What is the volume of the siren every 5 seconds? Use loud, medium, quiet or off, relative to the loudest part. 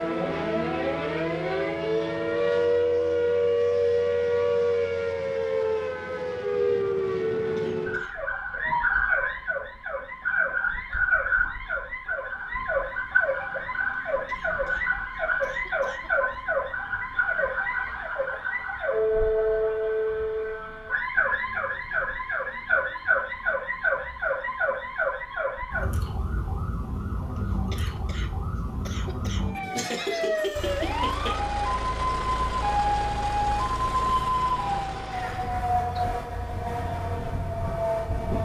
loud, loud, loud, loud, loud, medium, loud, medium.